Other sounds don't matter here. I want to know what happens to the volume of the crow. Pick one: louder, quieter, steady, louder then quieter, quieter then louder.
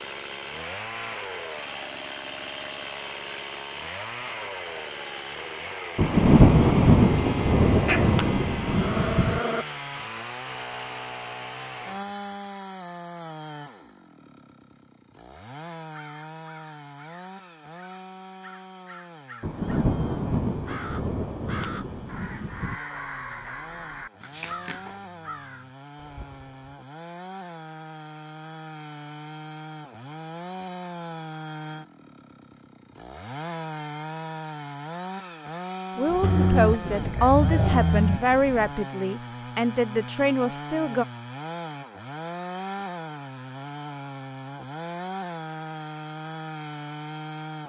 louder then quieter.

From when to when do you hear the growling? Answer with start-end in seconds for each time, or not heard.
7.8-9.7, 24.2-24.9, 36.2-38.2.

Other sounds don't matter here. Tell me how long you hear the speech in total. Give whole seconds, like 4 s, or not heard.
5 s.